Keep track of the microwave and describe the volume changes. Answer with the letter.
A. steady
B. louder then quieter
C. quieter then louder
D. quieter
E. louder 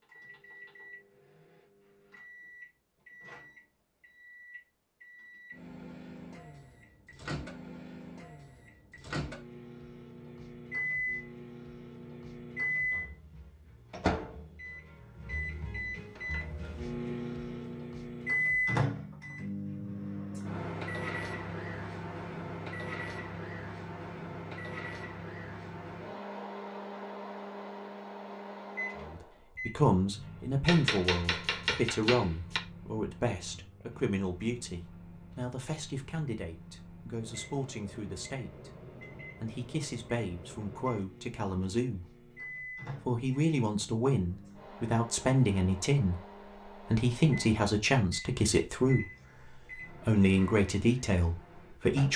B.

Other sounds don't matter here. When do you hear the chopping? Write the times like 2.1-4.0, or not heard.
30.6-32.6.